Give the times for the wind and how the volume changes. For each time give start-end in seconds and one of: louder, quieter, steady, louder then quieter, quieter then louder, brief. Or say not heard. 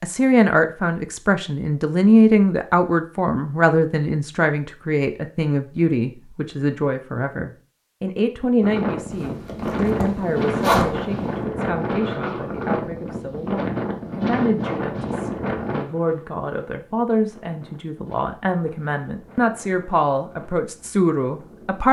8.6-21.8 quieter.